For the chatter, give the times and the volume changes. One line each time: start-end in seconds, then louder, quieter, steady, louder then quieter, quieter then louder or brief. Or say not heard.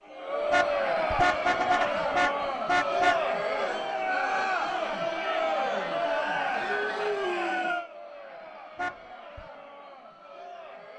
0.0-10.9 quieter.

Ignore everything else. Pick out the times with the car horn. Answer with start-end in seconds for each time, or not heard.
0.5-3.2, 8.8-9.4.